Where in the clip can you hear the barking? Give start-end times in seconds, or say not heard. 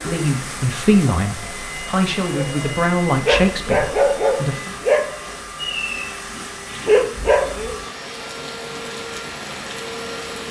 2.4-7.8.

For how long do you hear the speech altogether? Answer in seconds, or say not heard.
5 s.